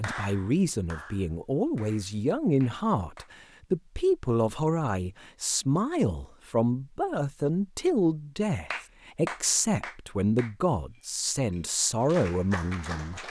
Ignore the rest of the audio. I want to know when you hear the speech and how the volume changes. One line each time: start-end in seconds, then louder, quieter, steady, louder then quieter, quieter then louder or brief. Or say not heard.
0.0-13.2 steady.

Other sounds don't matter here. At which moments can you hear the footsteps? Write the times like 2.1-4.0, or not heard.
not heard.